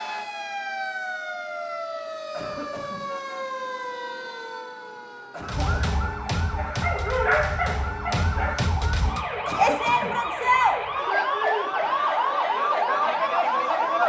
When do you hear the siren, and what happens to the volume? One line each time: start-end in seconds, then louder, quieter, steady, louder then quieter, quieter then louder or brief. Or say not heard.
0.0-14.0 louder.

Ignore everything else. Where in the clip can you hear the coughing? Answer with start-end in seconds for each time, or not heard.
2.3-3.0, 5.3-6.0, 9.4-10.2.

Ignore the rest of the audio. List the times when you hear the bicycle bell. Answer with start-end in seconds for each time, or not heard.
not heard.